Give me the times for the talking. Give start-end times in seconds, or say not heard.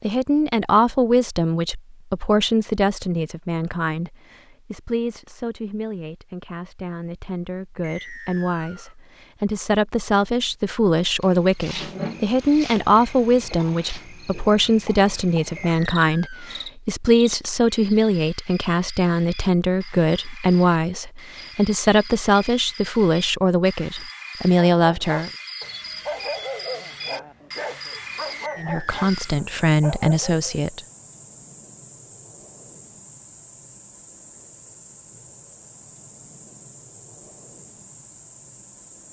0.0-25.3, 28.6-30.8.